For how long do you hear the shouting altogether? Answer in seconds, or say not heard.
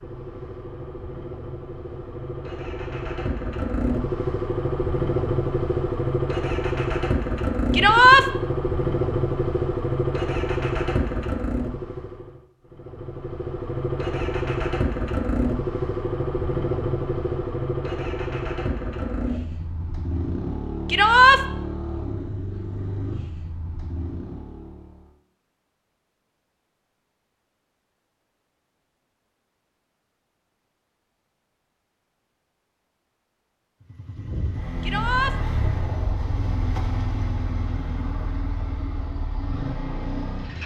2 s.